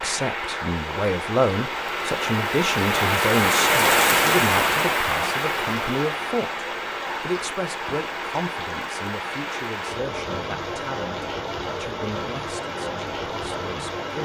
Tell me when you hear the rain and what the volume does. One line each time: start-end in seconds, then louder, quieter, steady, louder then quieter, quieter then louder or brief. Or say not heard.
0.0-14.1 louder then quieter.